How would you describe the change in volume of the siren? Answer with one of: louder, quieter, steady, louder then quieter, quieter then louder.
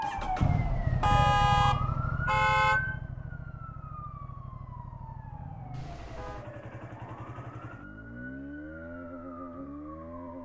quieter.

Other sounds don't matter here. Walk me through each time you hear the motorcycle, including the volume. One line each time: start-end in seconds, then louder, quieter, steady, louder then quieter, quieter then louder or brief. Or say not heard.
0.0-10.3 quieter.